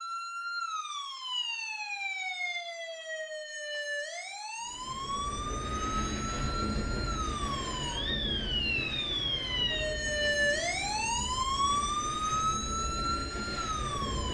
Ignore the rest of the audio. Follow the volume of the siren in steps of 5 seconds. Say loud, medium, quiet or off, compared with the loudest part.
medium, loud, loud.